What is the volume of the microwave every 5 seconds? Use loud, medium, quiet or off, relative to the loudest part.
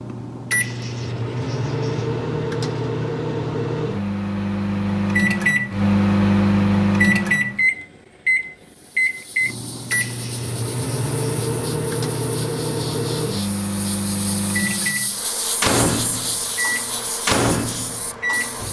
medium, loud, medium, medium.